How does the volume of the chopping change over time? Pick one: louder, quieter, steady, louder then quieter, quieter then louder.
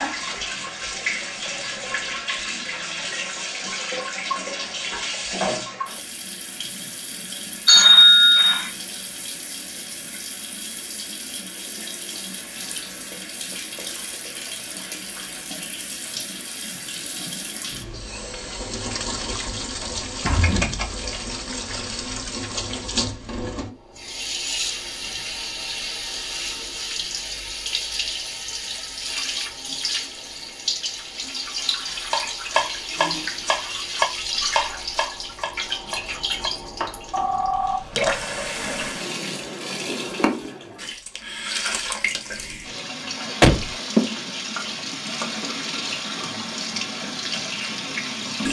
quieter.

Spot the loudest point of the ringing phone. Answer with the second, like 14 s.
8 s.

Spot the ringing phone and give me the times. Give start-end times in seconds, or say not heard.
7.7-8.7, 37.1-38.6.